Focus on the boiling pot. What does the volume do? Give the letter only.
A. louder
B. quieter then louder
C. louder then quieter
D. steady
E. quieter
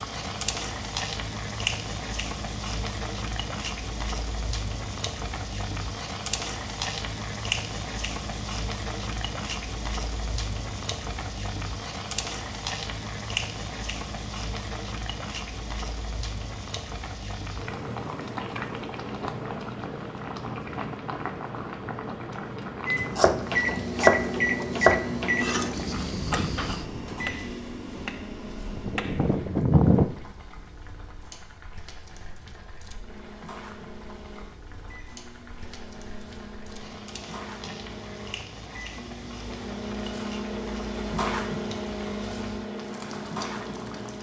E.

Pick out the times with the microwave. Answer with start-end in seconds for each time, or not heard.
22.9-29.6, 32.9-44.1.